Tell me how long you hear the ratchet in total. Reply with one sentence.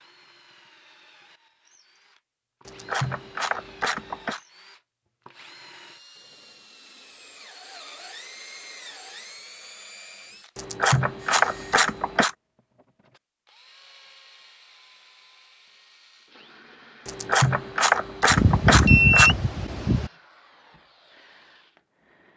The ratchet can be heard for 6 seconds in total.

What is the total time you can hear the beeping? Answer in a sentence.
You can hear the beeping for 2 seconds altogether.